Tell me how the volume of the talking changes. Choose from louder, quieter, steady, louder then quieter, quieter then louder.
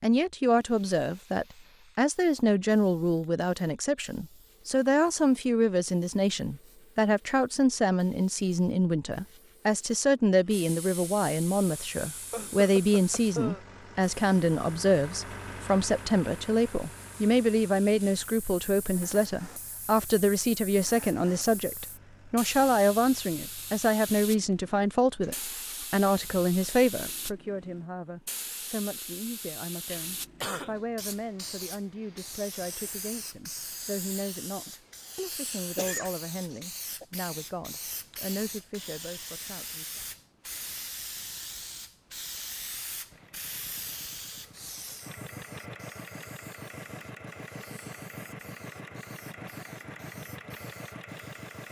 quieter.